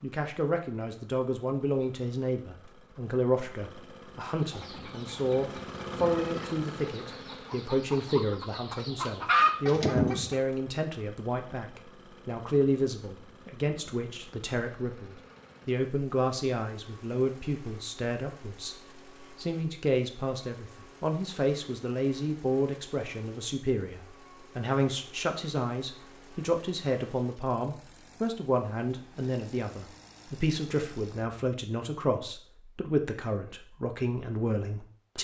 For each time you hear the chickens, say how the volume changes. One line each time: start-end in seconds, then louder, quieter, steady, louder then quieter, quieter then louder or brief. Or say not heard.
4.5-10.3 louder.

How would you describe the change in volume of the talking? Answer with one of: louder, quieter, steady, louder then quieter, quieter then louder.
steady.